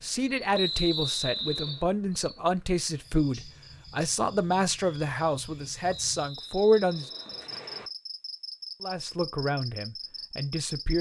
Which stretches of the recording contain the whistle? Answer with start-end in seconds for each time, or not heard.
0.5-1.9, 5.9-7.9.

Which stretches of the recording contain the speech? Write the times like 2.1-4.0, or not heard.
0.0-7.0, 8.8-10.9.